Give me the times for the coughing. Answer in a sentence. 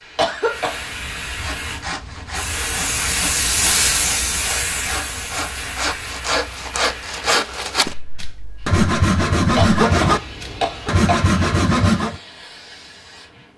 The coughing can be heard from 0.1 to 0.9 s and from 9.6 to 11.3 s.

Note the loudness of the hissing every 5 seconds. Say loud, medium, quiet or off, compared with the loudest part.
loud, medium, quiet.